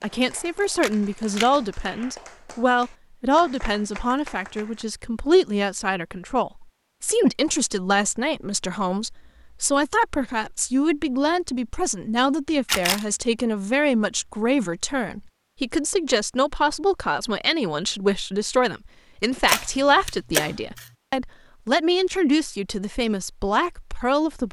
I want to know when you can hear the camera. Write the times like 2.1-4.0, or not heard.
0.8-1.5, 12.7-13.1, 19.4-20.9.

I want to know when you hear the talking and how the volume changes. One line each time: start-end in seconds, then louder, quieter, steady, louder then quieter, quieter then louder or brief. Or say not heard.
0.0-24.4 steady.